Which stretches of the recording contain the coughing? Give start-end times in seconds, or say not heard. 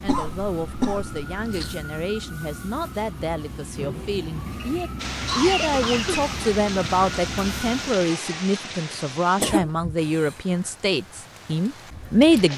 0.1-1.8, 4.5-6.3, 9.3-10.3.